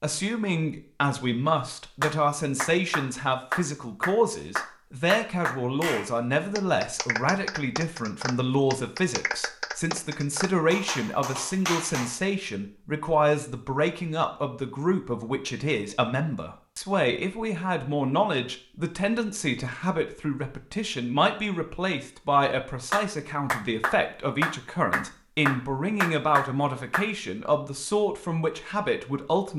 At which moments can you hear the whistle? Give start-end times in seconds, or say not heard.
not heard.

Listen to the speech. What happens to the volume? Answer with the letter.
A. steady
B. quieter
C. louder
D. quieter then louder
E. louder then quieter
A.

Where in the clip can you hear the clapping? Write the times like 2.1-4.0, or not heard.
2.0-12.2, 22.9-27.1.